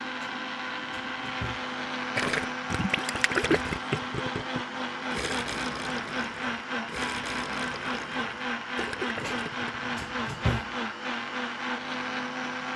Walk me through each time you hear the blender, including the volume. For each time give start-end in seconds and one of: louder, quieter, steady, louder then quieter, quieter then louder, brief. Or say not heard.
0.0-12.7 steady.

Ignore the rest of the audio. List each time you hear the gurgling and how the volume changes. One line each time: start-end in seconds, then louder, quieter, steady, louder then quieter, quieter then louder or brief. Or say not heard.
2.1-10.1 quieter.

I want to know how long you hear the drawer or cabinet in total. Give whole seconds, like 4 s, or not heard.
3 s.